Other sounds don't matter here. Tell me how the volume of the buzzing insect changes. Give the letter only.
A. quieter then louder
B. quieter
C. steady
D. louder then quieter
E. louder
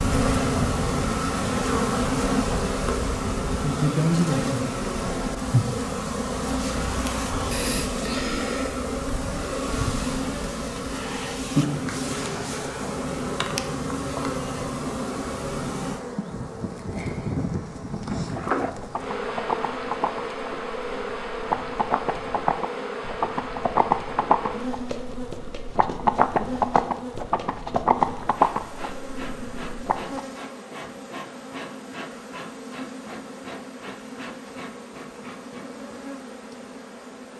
B.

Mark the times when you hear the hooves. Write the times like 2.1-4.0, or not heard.
18.0-30.2.